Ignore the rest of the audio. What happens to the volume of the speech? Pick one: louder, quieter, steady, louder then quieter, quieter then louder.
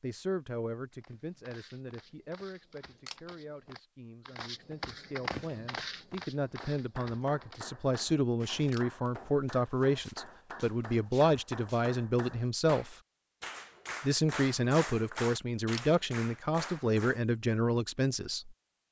louder.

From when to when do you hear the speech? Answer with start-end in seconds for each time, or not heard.
0.0-12.9, 14.0-18.6.